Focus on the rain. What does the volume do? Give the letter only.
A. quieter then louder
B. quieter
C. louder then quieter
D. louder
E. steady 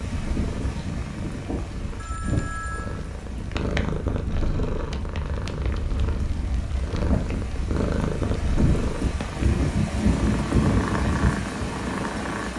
A.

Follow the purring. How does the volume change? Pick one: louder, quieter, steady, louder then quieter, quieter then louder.
louder.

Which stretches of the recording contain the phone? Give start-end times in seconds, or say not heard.
1.9-3.0.